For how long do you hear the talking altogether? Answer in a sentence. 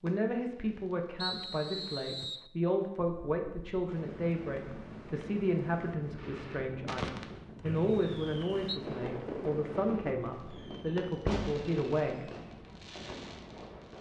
You can hear the talking for 12 seconds altogether.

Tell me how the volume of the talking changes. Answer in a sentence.
The volume of the talking stays about the same.